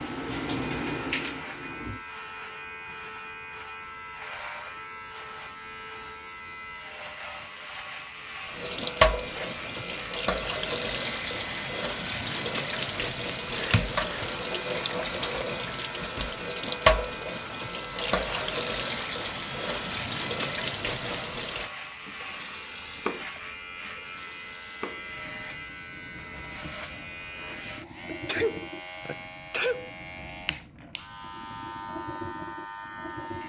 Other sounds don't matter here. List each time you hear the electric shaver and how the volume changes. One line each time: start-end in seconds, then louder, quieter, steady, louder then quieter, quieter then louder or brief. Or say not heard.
0.0-33.4 steady.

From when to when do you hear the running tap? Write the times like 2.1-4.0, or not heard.
0.0-2.0, 8.4-33.4.